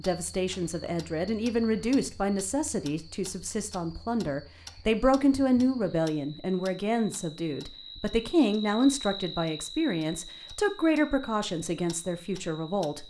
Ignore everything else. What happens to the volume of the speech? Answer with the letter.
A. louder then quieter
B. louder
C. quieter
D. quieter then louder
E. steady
E.